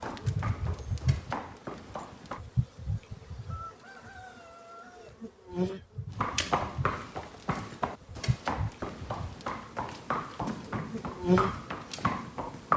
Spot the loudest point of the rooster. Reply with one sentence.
The volume of the rooster peaks at 4 seconds.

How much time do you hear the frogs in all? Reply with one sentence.
You can't hear the frogs here.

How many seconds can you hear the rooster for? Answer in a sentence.
You can hear the rooster for 2 seconds altogether.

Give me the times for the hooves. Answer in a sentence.
The hooves can be heard from 0.0 to 2.4 s and from 6.1 to 12.7 s.